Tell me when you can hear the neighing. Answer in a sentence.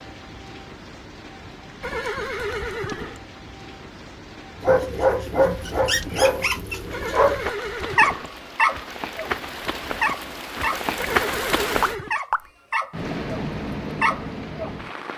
The neighing can be heard from 1.8 to 3.2 s, from 6.9 to 8.3 s and from 10.9 to 12.2 s.